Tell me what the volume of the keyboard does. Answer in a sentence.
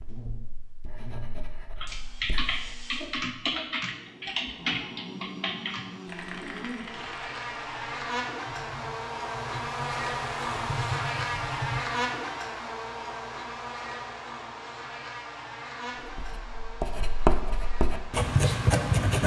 The loudness of the keyboard goes down, then up.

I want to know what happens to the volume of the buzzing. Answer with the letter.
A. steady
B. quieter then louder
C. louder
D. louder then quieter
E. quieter
D.